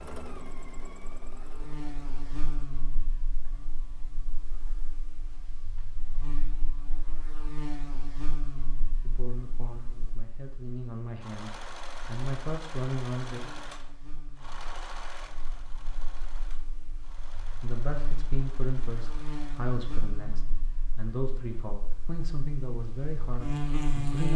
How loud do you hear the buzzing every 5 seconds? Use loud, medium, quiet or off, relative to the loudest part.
medium, medium, quiet, medium, loud.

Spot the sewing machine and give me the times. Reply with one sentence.
You can hear the sewing machine from 0.0 to 2.7 s and from 11.2 to 19.6 s.